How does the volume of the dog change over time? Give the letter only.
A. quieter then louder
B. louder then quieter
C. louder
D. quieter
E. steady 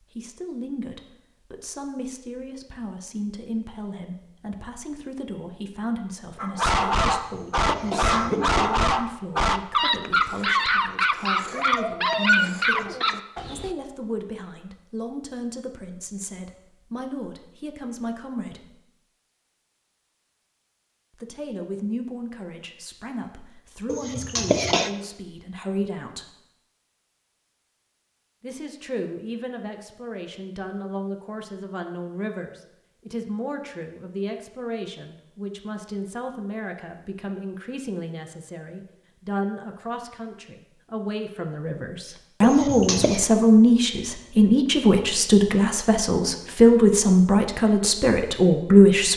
E.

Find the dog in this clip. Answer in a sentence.
The dog can be heard from 6.3 to 13.8 s.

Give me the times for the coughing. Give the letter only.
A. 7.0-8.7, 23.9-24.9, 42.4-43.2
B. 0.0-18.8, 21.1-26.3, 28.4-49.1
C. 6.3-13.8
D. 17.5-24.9
A.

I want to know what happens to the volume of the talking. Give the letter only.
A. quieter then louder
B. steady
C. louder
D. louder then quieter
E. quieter
C.